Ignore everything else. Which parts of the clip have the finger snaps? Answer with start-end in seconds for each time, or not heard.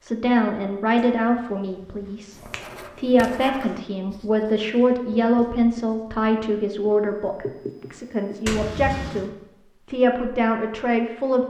0.9-1.4, 2.0-2.7, 8.4-9.3.